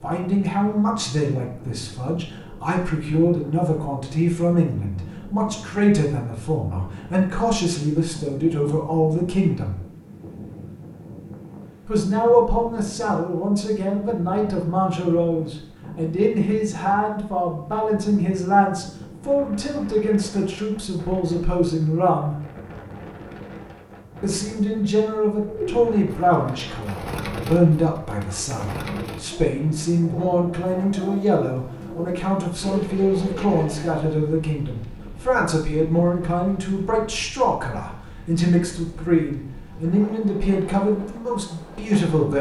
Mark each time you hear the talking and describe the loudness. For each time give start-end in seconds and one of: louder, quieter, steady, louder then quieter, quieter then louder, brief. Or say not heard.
0.0-9.8 steady
11.8-22.4 steady
24.2-42.3 steady.